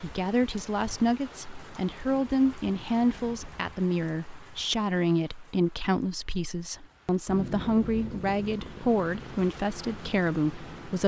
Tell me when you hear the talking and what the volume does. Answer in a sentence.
You can hear the talking from 0.0 to 11.0 s, at a steady volume.